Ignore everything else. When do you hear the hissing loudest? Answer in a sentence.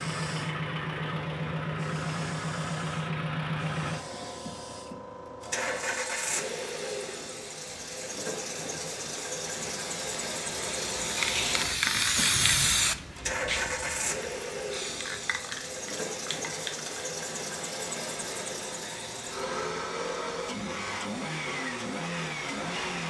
The loudest moment of the hissing is at 12 seconds.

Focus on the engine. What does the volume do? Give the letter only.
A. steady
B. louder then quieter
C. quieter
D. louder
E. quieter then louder
A.